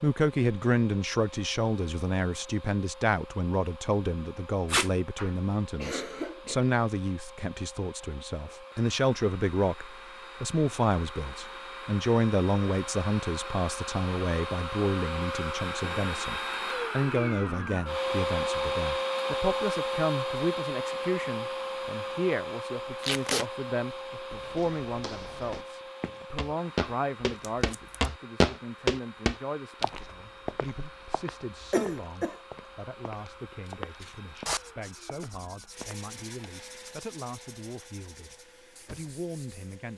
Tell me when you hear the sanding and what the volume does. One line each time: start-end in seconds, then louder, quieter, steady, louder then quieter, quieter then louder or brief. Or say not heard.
33.6-39.8 quieter.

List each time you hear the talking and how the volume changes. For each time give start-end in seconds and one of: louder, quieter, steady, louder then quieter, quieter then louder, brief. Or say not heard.
0.0-39.9 quieter.